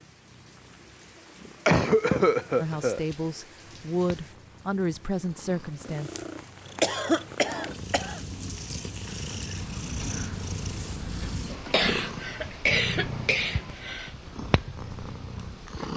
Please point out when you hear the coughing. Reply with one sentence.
You can hear the coughing from 1.6 to 3.0 s, from 6.8 to 8.2 s and from 11.5 to 14.1 s.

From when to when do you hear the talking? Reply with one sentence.
The talking can be heard from 2.5 to 6.1 s.